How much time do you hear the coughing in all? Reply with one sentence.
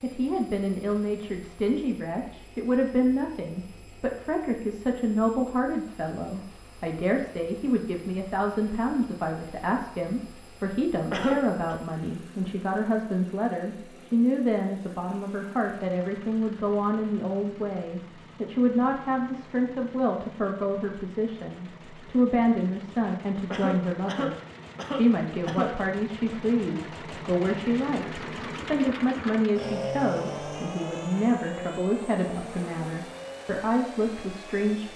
You can hear the coughing for 3 seconds altogether.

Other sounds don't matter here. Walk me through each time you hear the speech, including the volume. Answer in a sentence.
The speech can be heard from 0.0 to 34.9 s, at a steady volume.